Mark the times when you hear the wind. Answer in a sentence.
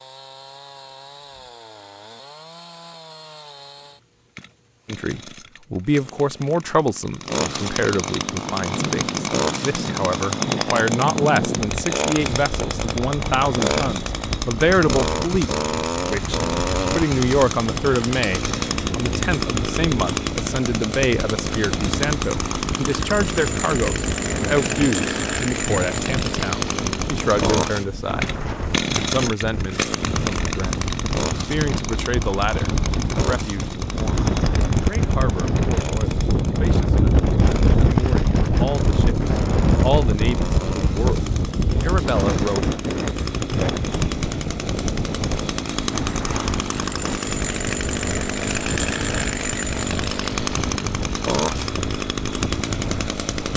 The wind can be heard from 8.2 to 53.5 s.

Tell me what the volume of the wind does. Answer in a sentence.
The loudness of the wind goes up, then down.